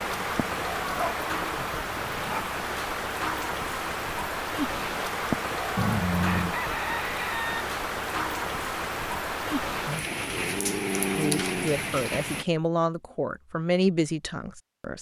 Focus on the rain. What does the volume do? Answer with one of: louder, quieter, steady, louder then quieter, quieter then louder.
steady.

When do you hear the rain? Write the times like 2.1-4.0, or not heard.
0.0-12.4.